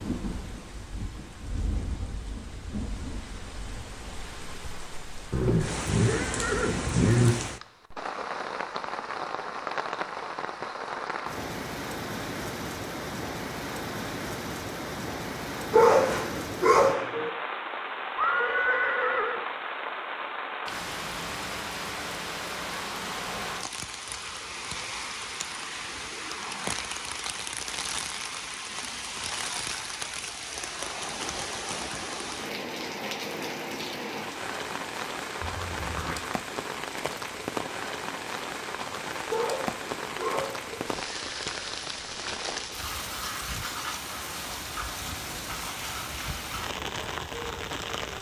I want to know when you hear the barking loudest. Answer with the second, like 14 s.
16 s.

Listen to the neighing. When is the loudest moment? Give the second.
7 s.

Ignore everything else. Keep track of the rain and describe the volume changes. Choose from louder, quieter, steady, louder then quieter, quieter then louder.
steady.